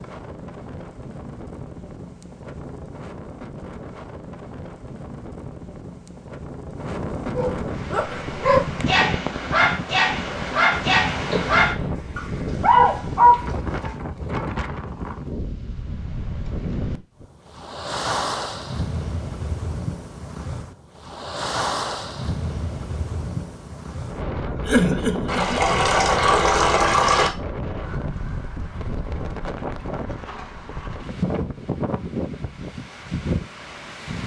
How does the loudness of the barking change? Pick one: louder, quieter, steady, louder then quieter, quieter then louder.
louder.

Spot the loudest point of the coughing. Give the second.
25 s.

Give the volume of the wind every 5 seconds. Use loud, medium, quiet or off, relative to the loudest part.
medium, loud, loud, loud, loud, loud, loud.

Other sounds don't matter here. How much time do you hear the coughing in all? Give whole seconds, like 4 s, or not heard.
2 s.